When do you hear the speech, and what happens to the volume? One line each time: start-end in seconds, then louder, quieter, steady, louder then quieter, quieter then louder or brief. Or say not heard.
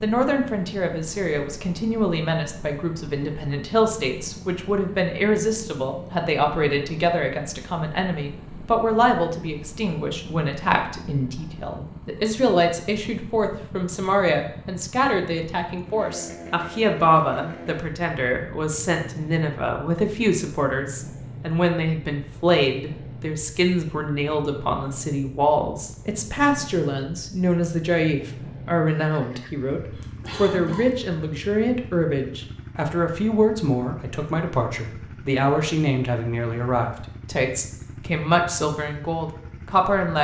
0.0-40.1 steady.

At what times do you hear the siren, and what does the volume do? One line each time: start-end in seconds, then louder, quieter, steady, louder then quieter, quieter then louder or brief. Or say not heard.
not heard.